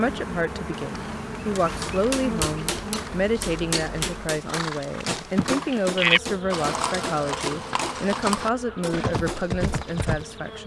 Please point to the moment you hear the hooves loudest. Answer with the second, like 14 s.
6 s.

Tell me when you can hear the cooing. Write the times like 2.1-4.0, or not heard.
not heard.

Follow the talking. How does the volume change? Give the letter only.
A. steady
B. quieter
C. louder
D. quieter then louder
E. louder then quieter
A.